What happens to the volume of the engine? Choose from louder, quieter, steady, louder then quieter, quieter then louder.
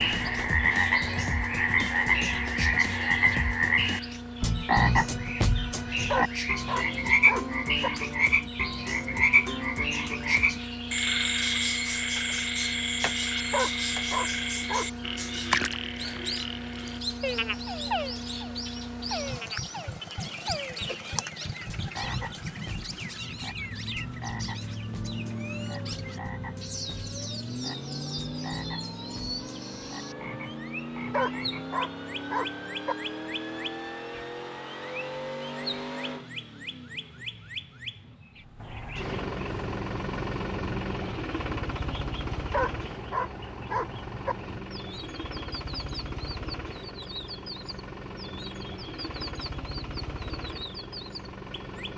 steady.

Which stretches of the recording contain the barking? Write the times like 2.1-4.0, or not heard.
6.1-7.9, 13.5-14.9, 31.1-33.0, 42.5-44.4.